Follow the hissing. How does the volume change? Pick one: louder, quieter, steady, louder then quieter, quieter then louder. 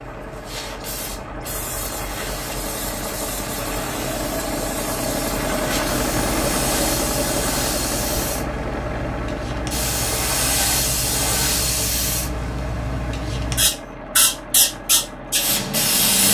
louder.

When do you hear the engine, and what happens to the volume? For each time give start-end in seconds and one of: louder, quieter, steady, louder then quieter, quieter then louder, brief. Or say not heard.
0.0-16.2 louder then quieter.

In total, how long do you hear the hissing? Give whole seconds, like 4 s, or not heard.
16 s.